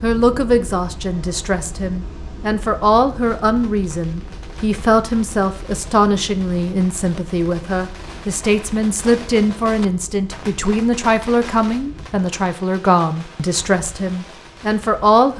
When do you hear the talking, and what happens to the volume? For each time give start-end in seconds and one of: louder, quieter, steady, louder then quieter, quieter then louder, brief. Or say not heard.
0.0-15.3 steady.